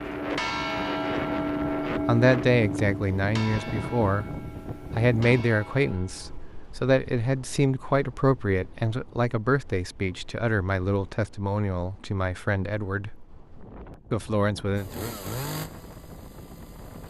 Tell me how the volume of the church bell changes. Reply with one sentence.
The volume of the church bell goes down.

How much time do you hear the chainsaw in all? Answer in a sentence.
The chainsaw can be heard for 2 seconds in total.